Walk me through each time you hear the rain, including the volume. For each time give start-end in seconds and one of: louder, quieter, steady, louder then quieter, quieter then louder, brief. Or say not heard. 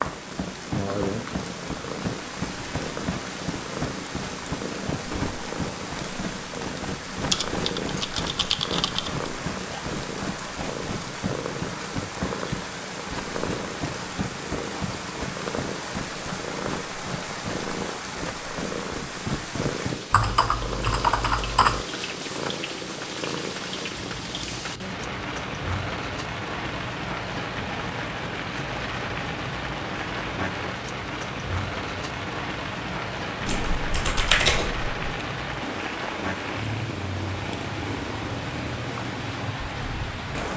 0.0-40.5 steady.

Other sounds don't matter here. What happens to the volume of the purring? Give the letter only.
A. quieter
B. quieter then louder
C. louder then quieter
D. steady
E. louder
D.